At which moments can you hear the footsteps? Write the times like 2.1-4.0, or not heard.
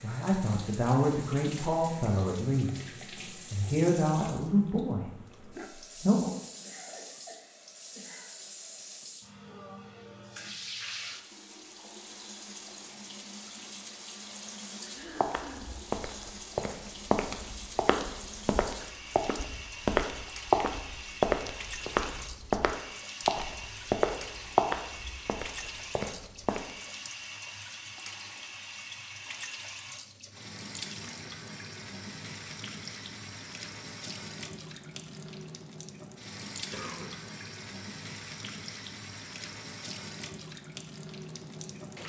15.2-26.7.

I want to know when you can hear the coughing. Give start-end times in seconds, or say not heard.
6.6-8.3, 14.9-15.8, 36.7-37.2.